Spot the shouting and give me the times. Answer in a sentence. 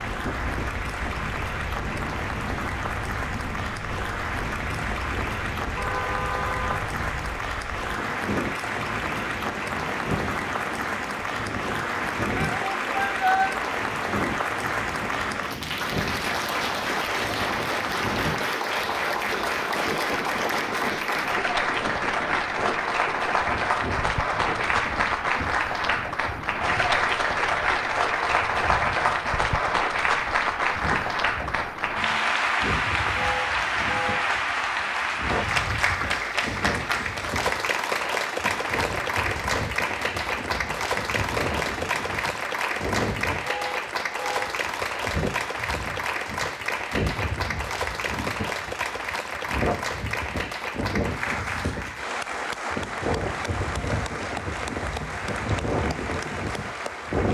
You can hear the shouting from 12.3 to 13.6 s.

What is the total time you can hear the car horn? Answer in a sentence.
The car horn can be heard for 3 seconds in total.